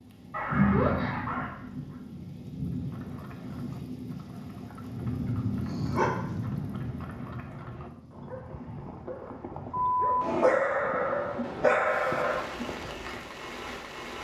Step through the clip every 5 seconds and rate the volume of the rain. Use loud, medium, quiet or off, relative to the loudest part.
loud, loud, medium.